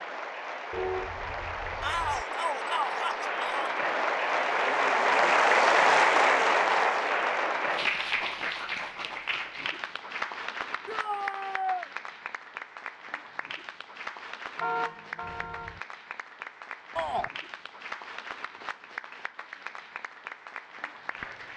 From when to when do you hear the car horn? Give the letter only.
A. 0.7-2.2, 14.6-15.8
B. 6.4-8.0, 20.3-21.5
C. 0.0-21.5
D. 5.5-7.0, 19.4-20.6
A.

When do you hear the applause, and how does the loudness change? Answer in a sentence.
You can hear the applause from 0.0 to 21.5 s, getting louder then quieter.